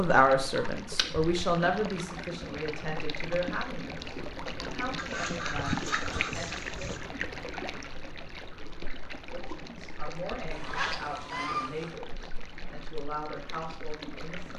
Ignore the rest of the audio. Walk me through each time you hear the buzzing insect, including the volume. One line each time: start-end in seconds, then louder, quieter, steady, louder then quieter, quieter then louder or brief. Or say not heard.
not heard.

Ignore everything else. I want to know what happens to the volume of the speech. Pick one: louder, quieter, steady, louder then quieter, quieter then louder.
quieter.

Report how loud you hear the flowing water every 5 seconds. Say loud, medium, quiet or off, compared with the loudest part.
loud, loud, medium.